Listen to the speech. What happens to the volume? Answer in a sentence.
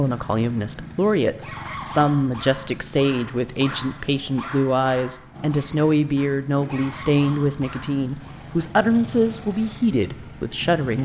The volume of the speech stays about the same.